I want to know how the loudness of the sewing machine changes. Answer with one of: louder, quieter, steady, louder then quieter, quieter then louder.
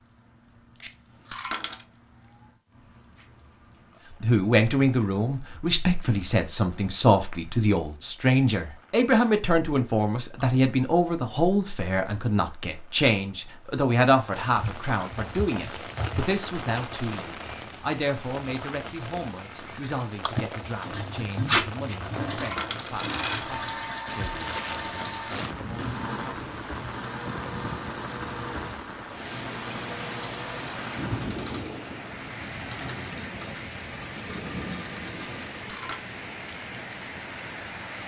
quieter.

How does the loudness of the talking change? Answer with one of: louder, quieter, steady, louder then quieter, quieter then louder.
quieter.